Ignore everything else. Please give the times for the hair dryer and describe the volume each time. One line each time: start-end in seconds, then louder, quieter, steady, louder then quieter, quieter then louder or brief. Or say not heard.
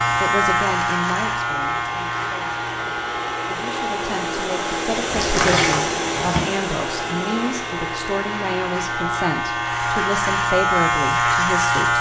0.0-11.9 louder then quieter.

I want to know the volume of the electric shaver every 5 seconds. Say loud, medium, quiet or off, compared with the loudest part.
medium, medium, loud.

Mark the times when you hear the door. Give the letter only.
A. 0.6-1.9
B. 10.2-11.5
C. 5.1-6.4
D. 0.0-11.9
C.